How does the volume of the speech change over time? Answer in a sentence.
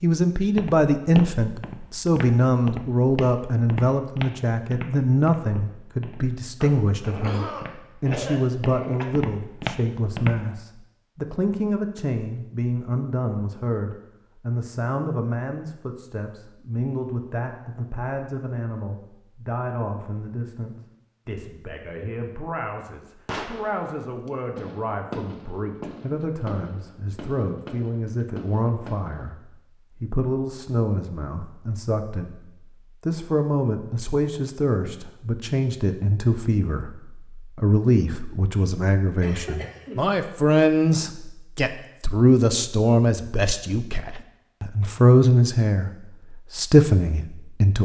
The loudness of the speech goes down, then up.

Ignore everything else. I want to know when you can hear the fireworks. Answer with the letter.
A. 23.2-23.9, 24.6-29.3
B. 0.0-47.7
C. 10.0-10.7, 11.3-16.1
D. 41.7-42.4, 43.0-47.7
A.